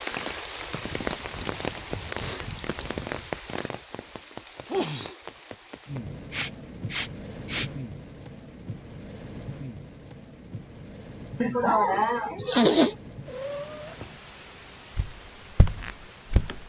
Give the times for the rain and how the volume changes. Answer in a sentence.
The rain can be heard from 0.0 to 16.6 s, getting quieter.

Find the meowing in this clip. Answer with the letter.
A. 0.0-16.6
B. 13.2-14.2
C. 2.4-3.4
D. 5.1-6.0
B.